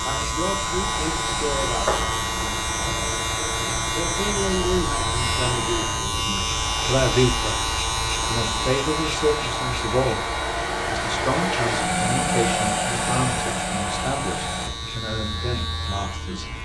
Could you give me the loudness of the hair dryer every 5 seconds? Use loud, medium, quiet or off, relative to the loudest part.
medium, medium, loud, off.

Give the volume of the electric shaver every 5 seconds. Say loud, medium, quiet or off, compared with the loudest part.
loud, loud, medium, medium.